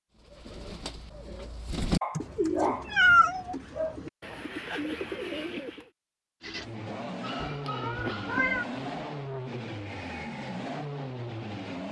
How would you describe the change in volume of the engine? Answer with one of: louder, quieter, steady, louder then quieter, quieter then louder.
steady.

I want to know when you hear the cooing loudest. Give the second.
3 s.